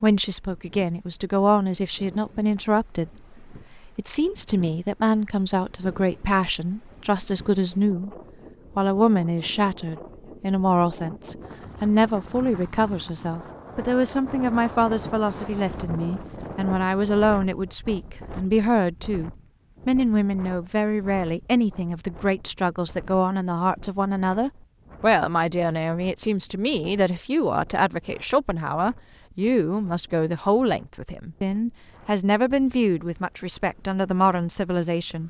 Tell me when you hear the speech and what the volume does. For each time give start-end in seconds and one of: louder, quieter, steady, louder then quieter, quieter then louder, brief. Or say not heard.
0.0-8.2 steady
8.8-35.2 steady.